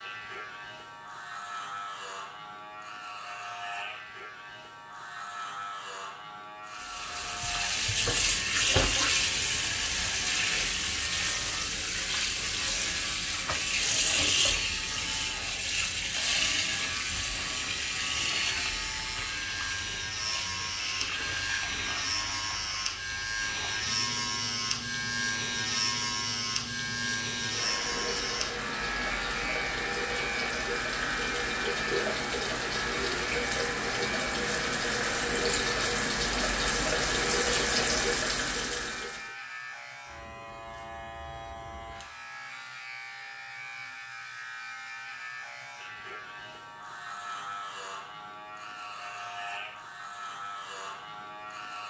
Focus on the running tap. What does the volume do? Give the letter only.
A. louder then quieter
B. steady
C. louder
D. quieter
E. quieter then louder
E.